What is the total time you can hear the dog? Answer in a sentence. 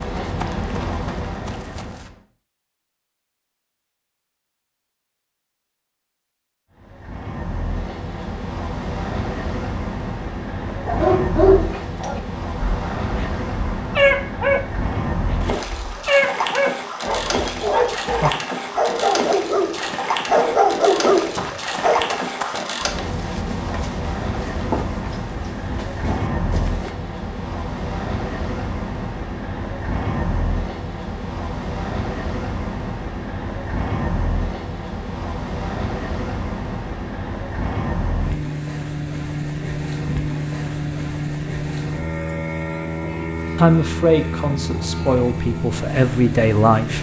The dog can be heard for 11 seconds in total.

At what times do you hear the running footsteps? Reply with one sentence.
The running footsteps can be heard from 0.0 to 2.1 s and from 21.1 to 26.9 s.